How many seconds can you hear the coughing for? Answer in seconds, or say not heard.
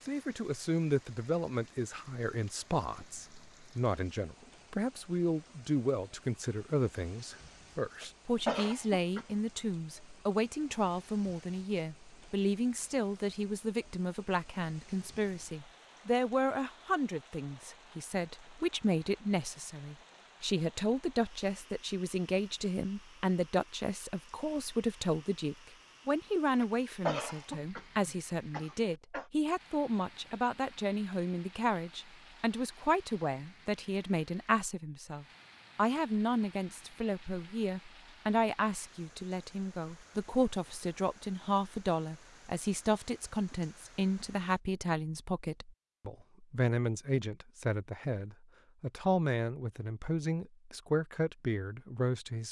4 s.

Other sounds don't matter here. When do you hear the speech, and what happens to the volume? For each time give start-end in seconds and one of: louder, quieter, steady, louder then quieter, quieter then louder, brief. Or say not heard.
0.1-52.4 steady.